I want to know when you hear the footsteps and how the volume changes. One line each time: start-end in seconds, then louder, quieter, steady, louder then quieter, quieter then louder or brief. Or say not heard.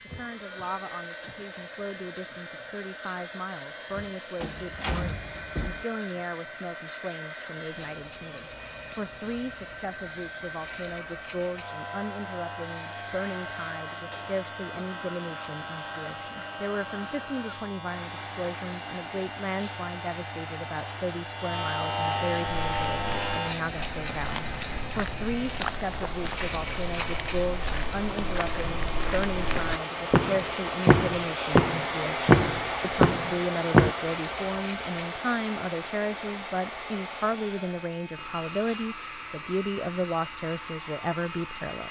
22.4-33.9 louder.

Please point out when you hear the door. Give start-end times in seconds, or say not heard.
4.4-5.8.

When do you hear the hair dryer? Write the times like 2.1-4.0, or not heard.
0.0-41.8.